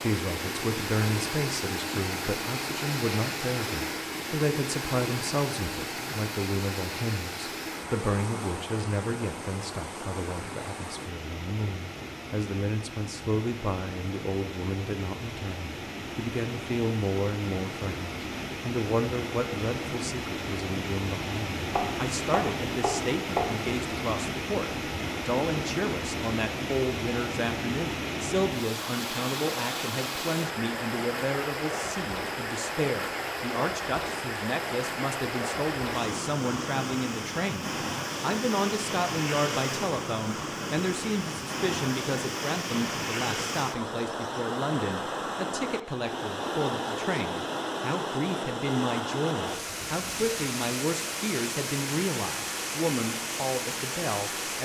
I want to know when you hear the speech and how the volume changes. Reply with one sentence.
You can hear the speech from 0.0 to 54.6 s, at a steady volume.